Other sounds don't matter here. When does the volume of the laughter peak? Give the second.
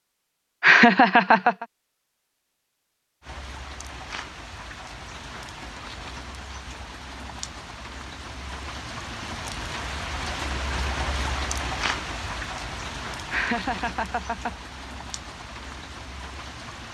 1 s.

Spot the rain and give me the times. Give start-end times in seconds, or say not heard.
3.2-16.8.